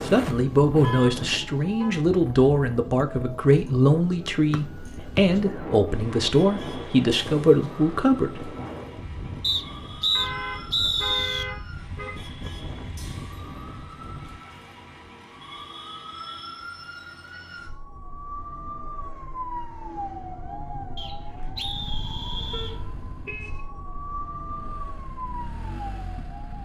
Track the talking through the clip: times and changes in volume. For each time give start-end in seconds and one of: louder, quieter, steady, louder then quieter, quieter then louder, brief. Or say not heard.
0.1-8.5 steady.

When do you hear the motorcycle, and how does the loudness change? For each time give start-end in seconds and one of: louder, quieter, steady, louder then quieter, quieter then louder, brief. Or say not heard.
21.7-26.6 quieter then louder.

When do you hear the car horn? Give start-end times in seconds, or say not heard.
0.8-2.0, 10.2-12.1, 22.5-23.6.